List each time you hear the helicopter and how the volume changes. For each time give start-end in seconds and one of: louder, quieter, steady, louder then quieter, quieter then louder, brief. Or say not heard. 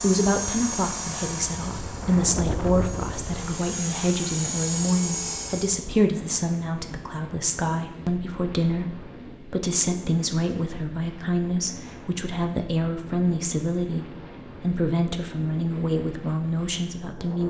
0.0-5.8 quieter then louder.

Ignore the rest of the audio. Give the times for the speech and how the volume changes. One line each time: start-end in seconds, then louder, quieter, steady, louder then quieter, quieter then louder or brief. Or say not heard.
0.0-17.4 steady.